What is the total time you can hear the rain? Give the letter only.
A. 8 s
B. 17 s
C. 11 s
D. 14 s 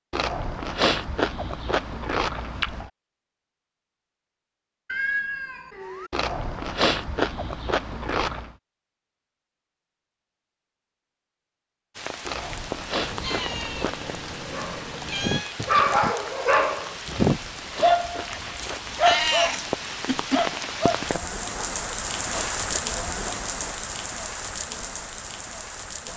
D.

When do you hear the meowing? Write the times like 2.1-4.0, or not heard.
4.8-6.1, 12.9-15.6, 18.9-20.6.